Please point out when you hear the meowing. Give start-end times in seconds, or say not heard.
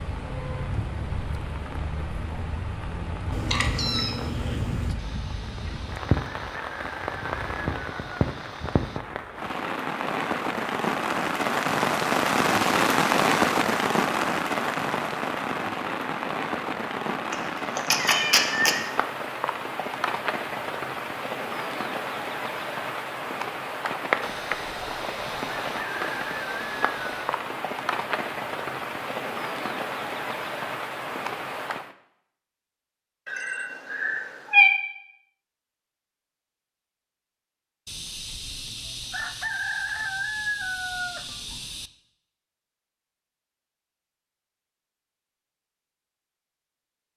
3.3-5.0, 17.3-18.9, 33.2-34.8.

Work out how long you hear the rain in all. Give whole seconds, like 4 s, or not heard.
32 s.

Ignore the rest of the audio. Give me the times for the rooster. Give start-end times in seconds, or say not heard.
5.0-9.0, 24.2-27.4, 37.9-41.9.